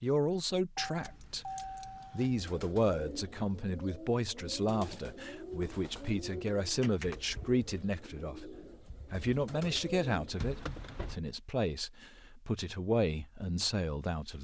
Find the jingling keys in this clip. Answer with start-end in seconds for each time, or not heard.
0.8-2.4, 6.8-7.8, 10.3-11.2.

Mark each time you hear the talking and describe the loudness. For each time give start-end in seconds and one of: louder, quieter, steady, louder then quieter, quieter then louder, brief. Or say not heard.
0.0-14.4 steady.